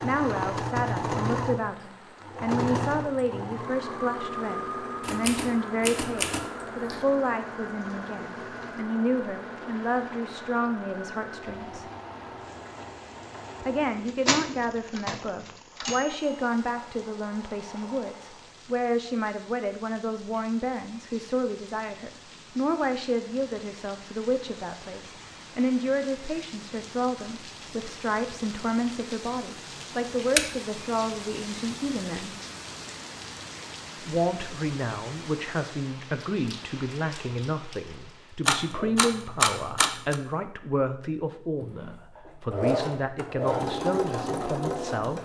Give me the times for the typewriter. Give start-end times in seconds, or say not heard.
5.0-7.0, 14.2-16.2, 38.5-40.1.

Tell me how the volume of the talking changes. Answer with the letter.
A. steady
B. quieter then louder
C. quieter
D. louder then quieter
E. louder
A.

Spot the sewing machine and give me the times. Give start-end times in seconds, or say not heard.
0.0-18.6, 41.6-45.2.